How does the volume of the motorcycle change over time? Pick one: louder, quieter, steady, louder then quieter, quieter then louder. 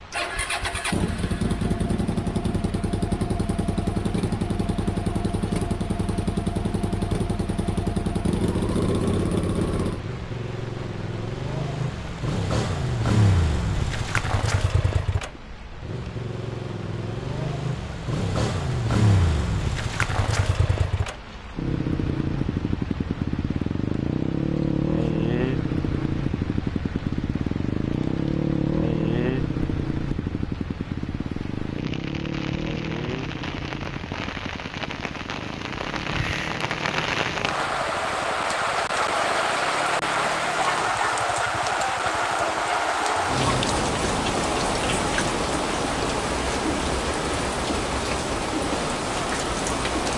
quieter.